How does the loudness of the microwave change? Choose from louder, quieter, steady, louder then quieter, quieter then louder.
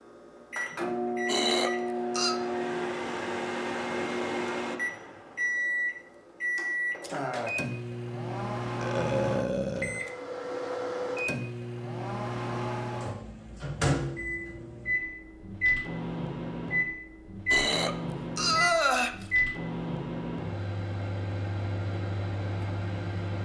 steady.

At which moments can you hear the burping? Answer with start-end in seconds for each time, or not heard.
1.2-2.4, 8.8-10.1, 17.5-19.2.